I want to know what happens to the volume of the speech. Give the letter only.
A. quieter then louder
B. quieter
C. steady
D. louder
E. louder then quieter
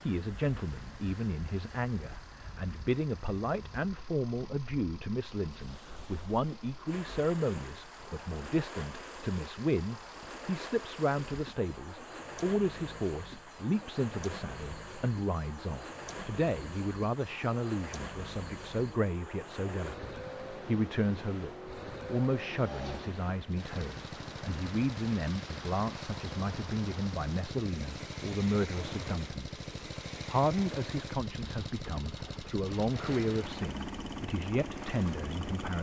C.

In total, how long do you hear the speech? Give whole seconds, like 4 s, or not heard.
35 s.